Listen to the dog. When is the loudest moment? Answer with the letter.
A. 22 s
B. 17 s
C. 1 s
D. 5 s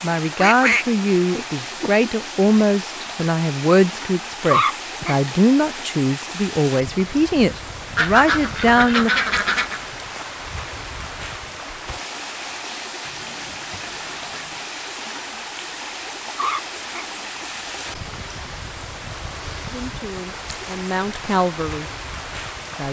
D.